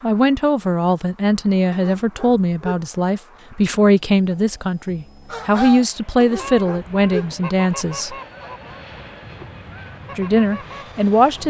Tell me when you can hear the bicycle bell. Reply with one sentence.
The bicycle bell can't be heard in this clip.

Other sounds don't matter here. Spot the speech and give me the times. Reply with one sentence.
The speech can be heard from 0.0 to 8.2 s and from 10.2 to 11.4 s.